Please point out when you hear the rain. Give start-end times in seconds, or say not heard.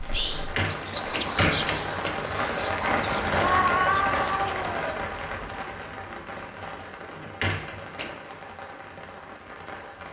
0.0-10.0.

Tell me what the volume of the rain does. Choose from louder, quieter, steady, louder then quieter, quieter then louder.
louder then quieter.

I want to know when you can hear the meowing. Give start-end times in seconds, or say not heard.
3.4-4.8.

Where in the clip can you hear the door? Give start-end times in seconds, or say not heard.
0.1-2.3, 7.0-8.1.